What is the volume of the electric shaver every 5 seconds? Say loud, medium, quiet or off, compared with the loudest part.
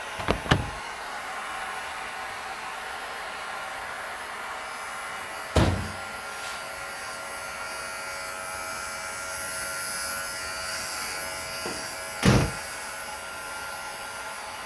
medium, loud, loud.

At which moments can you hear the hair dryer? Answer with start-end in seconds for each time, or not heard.
0.0-14.6.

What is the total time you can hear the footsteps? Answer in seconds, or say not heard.
not heard.